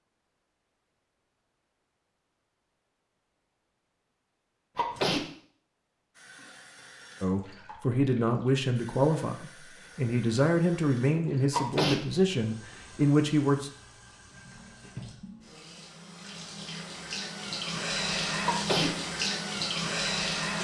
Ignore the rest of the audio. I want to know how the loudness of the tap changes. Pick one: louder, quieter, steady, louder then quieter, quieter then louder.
louder.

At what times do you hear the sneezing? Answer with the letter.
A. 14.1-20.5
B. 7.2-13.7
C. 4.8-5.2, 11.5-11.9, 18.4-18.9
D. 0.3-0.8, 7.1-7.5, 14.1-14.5
C.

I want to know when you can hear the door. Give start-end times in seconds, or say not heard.
not heard.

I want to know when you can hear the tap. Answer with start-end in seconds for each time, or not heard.
6.1-20.5.